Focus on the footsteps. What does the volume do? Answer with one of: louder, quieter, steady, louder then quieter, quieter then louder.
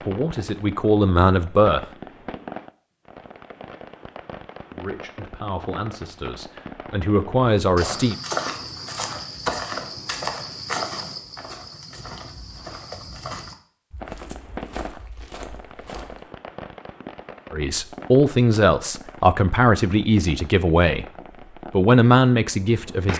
quieter.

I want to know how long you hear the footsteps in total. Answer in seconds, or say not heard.
9 s.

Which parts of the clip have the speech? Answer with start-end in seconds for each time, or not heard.
0.0-1.9, 4.7-8.2, 17.5-21.1, 21.7-23.1.